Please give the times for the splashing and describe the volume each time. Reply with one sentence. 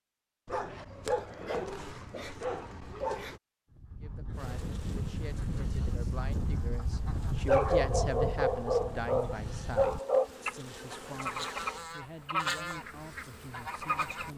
The splashing can't be heard in this clip.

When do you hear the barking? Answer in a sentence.
You can hear the barking from 0.5 to 3.4 s and from 7.5 to 10.3 s.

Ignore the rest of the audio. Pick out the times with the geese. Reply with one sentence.
You can hear the geese from 3.7 to 14.3 s.